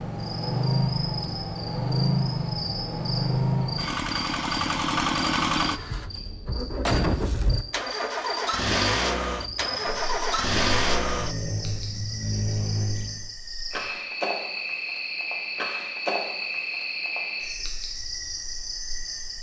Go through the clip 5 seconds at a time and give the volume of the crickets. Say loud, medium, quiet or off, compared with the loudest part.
medium, medium, loud, loud.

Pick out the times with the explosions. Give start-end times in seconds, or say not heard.
6.8-7.5.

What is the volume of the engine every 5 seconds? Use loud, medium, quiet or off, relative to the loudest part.
loud, loud, loud, off.